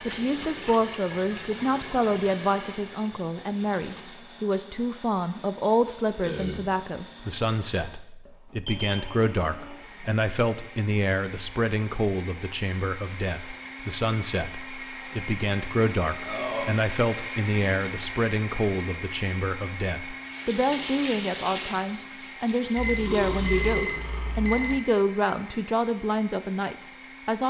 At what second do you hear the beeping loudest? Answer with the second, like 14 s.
24 s.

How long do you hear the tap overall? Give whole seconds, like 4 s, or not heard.
8 s.